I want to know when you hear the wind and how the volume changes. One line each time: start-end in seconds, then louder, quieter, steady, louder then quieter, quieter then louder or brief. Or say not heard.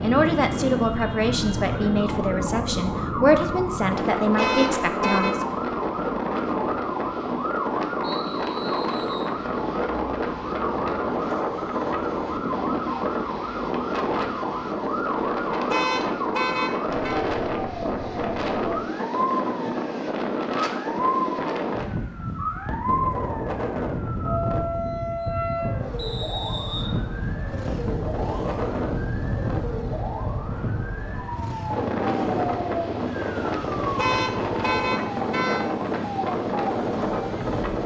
0.0-37.8 steady.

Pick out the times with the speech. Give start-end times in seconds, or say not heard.
0.0-5.5.